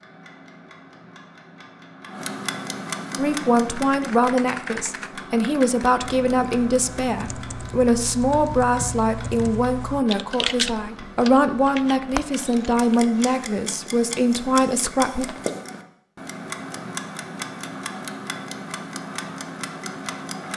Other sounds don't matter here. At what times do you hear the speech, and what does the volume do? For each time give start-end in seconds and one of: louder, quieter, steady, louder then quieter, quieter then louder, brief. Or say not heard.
3.1-15.2 steady.